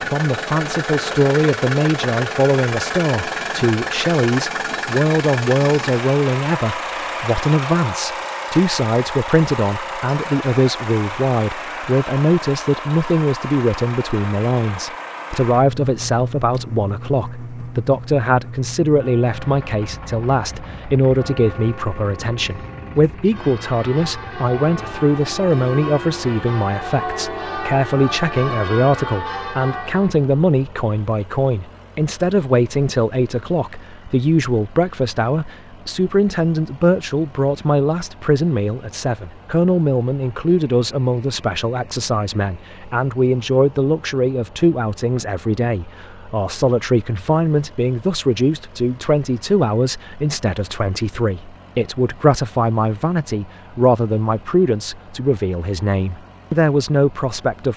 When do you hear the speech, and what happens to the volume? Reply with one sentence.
The speech can be heard from 0.1 to 57.7 s, at a steady volume.